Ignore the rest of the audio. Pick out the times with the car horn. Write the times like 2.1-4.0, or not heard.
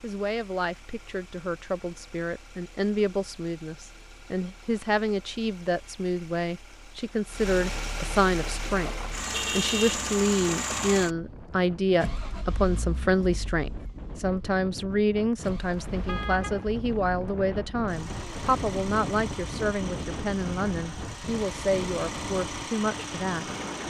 9.3-10.0, 15.7-16.6.